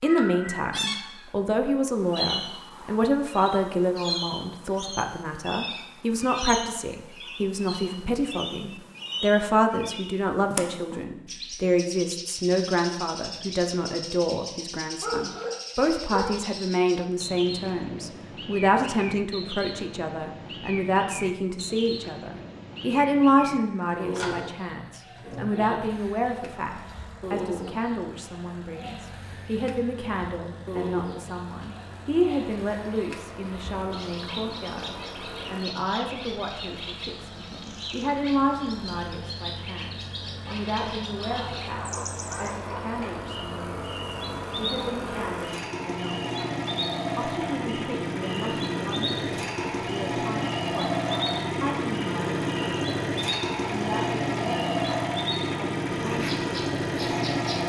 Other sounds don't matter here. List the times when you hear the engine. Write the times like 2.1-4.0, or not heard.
23.6-57.6.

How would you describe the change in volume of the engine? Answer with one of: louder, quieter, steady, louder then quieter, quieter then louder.
louder.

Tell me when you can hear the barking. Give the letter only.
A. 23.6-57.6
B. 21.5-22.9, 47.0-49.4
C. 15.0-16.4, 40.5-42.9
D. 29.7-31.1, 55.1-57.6
C.